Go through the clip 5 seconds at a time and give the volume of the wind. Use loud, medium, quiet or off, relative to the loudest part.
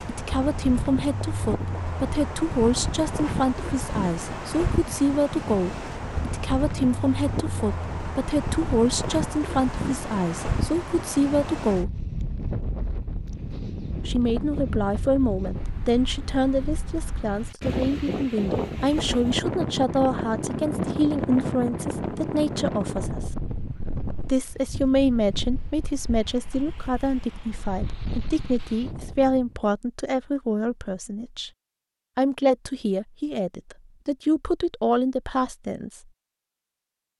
loud, loud, loud, loud, loud, medium, off, off.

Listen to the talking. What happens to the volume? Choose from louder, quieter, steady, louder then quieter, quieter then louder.
steady.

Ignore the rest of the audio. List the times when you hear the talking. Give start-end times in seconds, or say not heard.
0.1-12.1, 14.1-23.3, 24.2-31.5, 32.1-36.0.